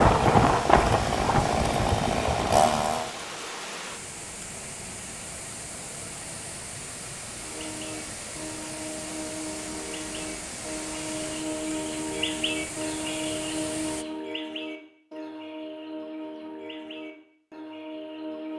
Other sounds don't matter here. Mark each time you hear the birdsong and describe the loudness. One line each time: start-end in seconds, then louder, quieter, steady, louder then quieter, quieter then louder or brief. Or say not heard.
7.3-18.5 louder then quieter.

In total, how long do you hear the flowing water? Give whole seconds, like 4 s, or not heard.
14 s.